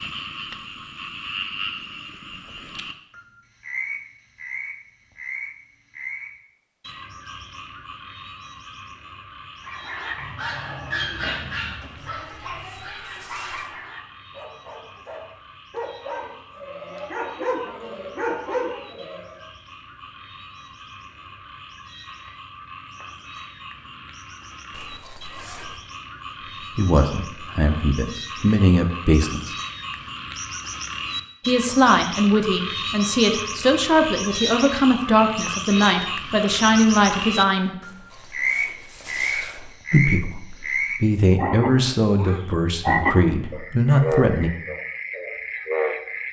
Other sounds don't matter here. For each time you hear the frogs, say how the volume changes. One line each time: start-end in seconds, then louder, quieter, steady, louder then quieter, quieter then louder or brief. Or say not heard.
0.0-46.2 quieter then louder.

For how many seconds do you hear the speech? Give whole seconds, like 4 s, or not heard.
14 s.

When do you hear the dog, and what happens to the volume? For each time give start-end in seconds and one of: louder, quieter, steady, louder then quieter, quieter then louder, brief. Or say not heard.
9.7-19.4 quieter then louder.